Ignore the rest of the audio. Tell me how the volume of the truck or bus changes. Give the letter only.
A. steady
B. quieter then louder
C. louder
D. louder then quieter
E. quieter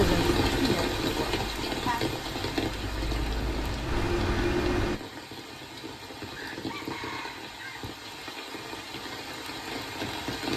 B.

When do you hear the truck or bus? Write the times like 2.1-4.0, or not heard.
0.0-5.0.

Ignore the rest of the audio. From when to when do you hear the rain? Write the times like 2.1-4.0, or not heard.
0.0-10.5.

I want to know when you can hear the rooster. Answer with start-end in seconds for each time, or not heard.
6.3-7.8.